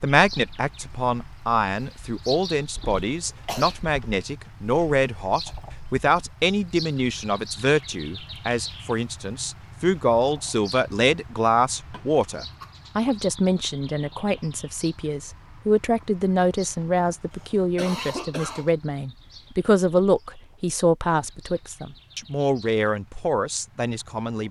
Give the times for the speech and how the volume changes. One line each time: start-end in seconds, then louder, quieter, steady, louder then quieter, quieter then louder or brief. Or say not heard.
0.0-24.4 steady.